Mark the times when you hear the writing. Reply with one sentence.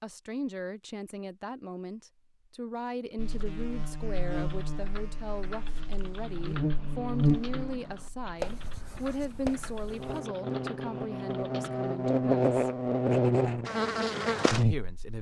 You can hear the writing from 8.3 to 10.2 s.